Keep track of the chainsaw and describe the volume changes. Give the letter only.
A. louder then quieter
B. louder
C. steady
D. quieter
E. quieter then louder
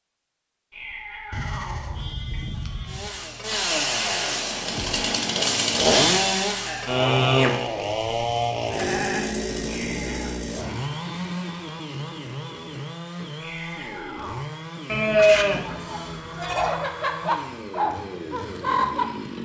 D.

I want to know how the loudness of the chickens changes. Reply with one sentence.
The volume of the chickens goes up.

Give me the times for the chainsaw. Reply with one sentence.
You can hear the chainsaw from 2.9 to 19.4 s.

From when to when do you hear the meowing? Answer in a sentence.
The meowing can be heard from 0.7 to 2.4 s, from 9.7 to 10.3 s and from 13.3 to 14.5 s.